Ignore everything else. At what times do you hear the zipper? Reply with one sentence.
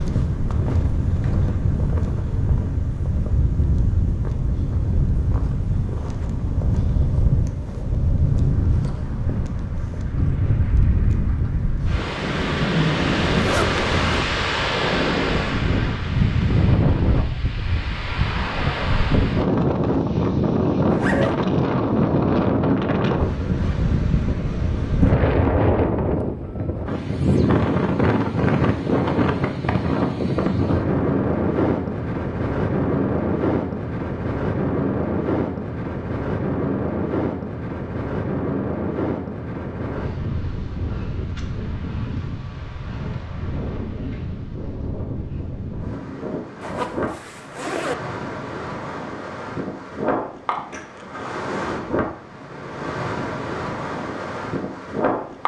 You can hear the zipper from 13.3 to 14.2 s, from 20.9 to 21.4 s and from 46.6 to 48.0 s.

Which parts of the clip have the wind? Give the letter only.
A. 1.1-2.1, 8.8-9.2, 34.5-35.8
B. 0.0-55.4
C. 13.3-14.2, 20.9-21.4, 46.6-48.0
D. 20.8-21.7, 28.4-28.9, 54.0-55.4
B.